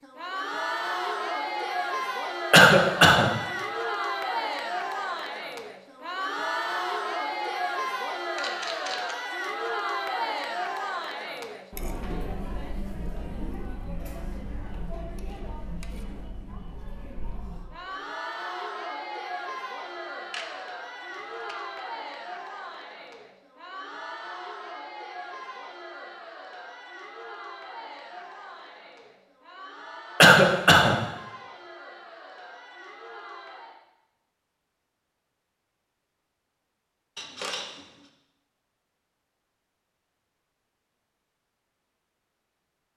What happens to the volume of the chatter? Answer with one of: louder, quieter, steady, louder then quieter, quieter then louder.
quieter.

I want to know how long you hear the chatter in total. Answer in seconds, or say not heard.
34 s.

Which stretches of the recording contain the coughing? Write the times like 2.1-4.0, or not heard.
2.5-3.2, 30.2-30.9.